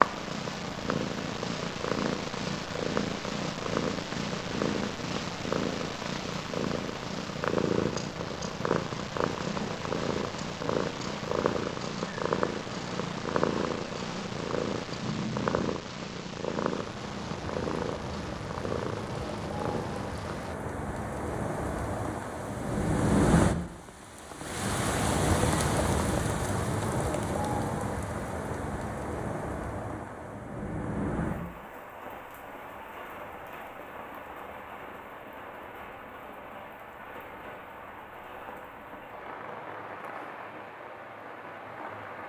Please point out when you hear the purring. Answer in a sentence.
You can hear the purring from 0.0 to 20.6 s.